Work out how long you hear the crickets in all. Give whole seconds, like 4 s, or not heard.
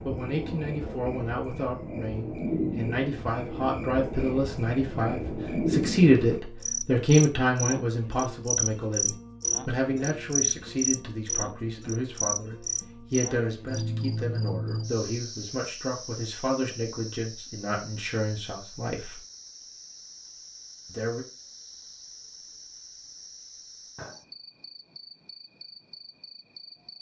27 s.